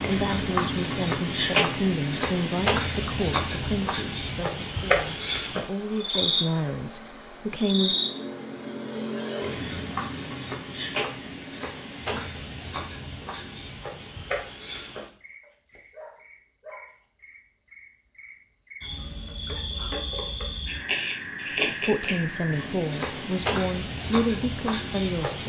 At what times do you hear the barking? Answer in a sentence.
The barking can be heard from 15.4 to 17.0 s.